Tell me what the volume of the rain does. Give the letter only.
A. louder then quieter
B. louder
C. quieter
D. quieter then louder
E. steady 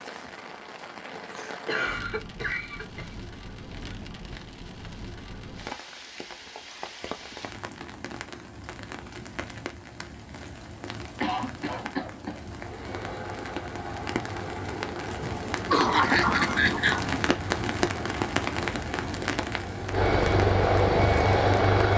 B.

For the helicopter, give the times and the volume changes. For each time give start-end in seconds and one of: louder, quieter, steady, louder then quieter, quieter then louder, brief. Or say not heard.
12.5-21.9 louder.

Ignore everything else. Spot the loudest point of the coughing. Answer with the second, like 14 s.
16 s.